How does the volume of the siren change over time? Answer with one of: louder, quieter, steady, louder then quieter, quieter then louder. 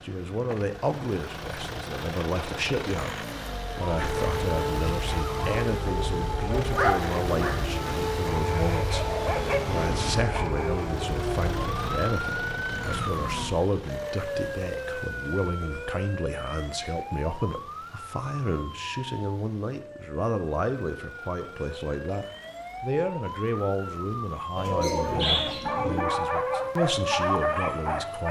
quieter then louder.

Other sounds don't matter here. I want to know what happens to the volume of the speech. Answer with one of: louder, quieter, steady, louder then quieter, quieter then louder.
steady.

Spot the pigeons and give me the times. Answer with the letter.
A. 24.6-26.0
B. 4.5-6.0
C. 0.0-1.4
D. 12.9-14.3
A.